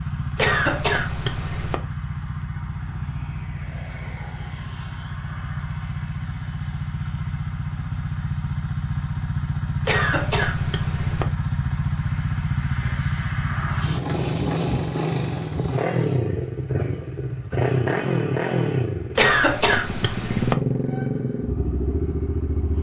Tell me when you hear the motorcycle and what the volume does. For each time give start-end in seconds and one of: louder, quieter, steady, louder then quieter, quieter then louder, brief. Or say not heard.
0.0-22.7 louder.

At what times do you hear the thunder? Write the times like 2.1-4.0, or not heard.
not heard.